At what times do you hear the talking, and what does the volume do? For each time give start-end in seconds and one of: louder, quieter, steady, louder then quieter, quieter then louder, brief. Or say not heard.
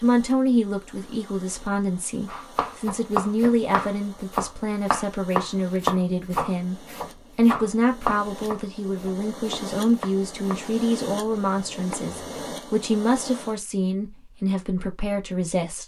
0.0-15.8 steady.